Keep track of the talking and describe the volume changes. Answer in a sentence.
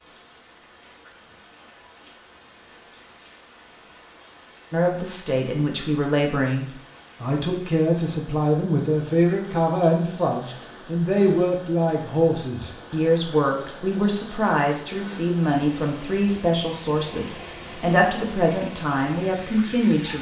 The loudness of the talking stays about the same.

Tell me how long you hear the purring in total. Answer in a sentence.
You can't hear the purring here.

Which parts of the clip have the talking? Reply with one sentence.
The talking can be heard from 4.7 to 20.1 s.